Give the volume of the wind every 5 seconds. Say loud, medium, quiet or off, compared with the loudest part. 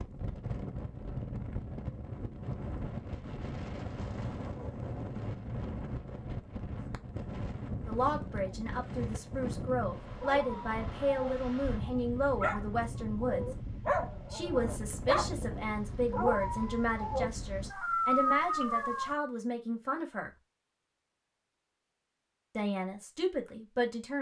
loud, loud, loud, loud, off.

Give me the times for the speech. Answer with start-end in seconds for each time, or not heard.
7.8-13.4, 14.3-20.3, 22.6-24.1.